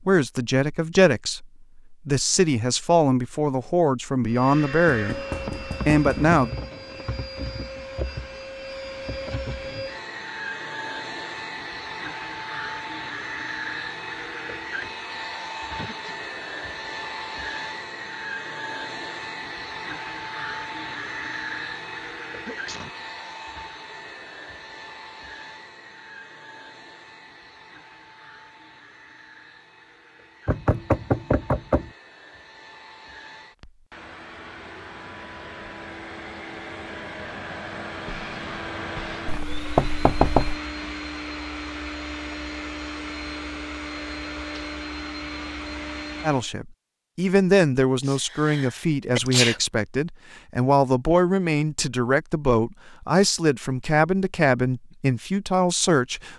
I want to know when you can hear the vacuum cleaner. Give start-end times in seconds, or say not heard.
4.2-46.5.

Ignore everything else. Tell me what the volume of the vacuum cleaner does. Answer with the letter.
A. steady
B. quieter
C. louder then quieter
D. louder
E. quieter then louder
E.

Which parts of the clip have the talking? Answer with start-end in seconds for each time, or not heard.
0.1-6.5, 46.2-56.3.